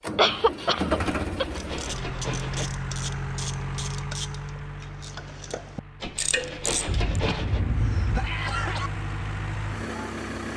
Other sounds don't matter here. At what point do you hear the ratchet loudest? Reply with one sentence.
The loudest moment of the ratchet is at 6 seconds.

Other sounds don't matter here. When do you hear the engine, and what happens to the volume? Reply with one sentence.
You can hear the engine from 0.0 to 10.5 s, getting quieter then louder.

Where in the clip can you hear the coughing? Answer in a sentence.
You can hear the coughing from 0.1 to 1.4 s and from 6.8 to 8.9 s.